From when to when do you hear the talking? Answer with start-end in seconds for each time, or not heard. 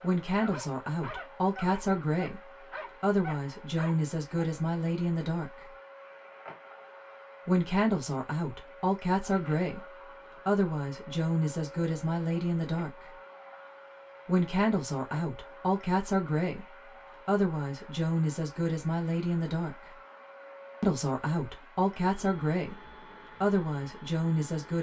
0.0-5.7, 7.5-13.1, 14.2-19.9, 20.8-24.7.